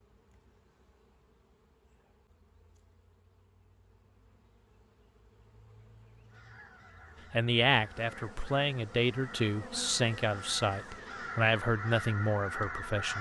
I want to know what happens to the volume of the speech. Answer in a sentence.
The loudness of the speech stays about the same.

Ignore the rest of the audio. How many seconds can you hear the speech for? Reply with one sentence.
The speech can be heard for 6 seconds in total.